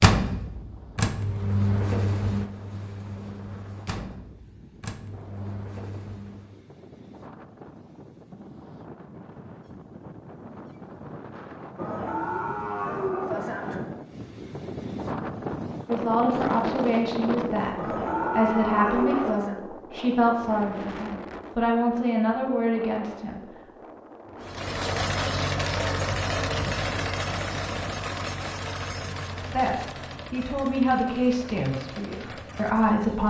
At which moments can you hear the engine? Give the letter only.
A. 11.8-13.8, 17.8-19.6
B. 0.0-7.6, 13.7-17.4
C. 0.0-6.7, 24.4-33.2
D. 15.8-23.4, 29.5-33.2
C.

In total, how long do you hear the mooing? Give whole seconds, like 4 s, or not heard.
4 s.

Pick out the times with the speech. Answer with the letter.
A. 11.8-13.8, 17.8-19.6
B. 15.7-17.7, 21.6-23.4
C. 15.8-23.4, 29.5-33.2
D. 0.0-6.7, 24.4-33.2
C.